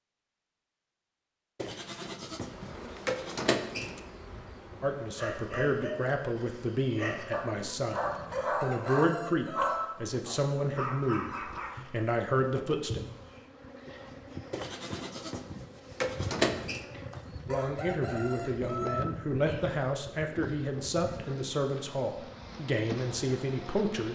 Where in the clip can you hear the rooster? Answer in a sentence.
The rooster can be heard from 8.0 to 9.9 s and from 17.1 to 19.1 s.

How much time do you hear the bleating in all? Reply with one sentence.
The bleating can be heard for 5 seconds in total.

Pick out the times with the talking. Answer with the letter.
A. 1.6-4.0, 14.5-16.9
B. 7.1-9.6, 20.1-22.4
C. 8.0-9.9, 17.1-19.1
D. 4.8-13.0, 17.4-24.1
D.